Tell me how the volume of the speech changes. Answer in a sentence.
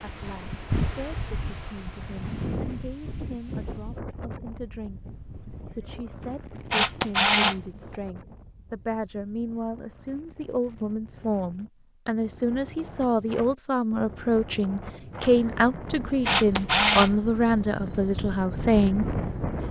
The volume of the speech goes up.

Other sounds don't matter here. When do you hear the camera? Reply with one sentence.
The camera can be heard from 6.7 to 8.0 s and from 16.2 to 17.5 s.